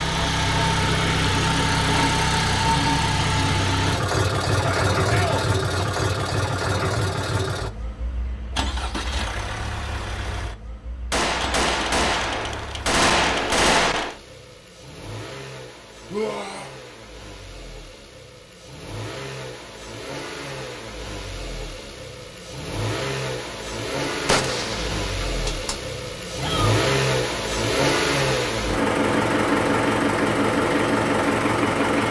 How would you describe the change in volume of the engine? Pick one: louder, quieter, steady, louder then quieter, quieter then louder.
quieter then louder.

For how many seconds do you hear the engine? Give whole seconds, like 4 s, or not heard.
32 s.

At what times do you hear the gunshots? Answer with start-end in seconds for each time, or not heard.
11.1-14.2, 24.1-25.8.